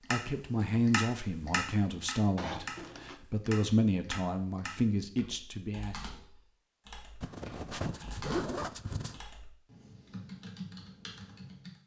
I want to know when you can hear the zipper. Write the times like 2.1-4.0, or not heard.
2.4-3.2, 7.2-9.2.